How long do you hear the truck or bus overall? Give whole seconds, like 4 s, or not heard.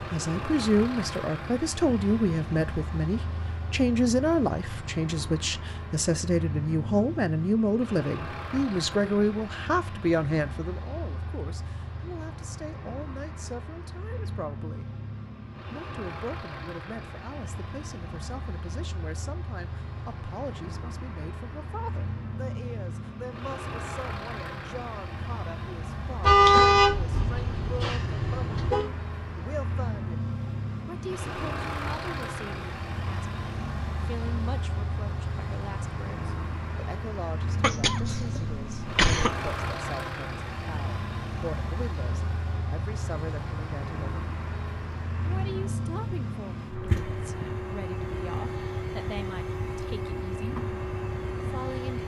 52 s.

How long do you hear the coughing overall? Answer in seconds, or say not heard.
2 s.